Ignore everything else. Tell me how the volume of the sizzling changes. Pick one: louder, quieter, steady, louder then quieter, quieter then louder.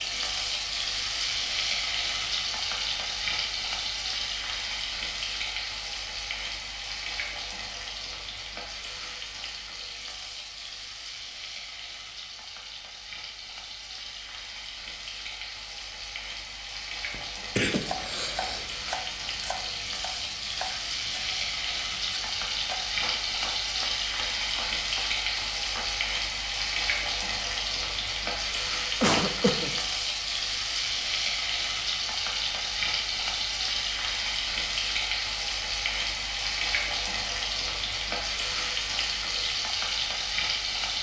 quieter then louder.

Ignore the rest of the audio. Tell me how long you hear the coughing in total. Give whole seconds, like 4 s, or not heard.
2 s.